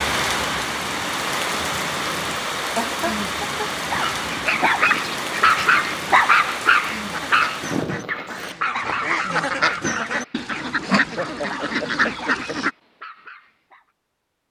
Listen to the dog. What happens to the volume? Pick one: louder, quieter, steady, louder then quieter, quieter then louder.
quieter.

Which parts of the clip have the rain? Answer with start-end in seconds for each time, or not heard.
0.0-8.6.